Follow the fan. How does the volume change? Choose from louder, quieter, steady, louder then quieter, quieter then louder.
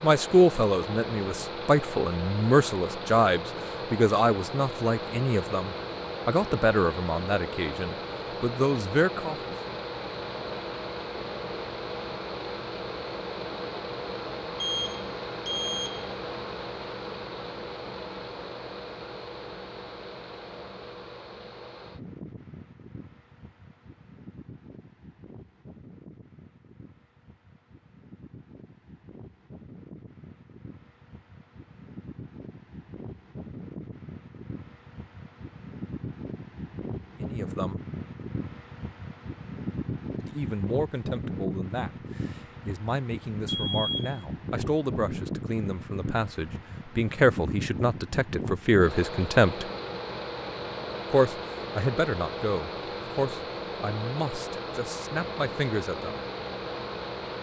quieter then louder.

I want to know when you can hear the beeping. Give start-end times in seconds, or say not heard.
14.6-16.1, 43.5-44.2.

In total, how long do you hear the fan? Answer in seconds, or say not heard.
57 s.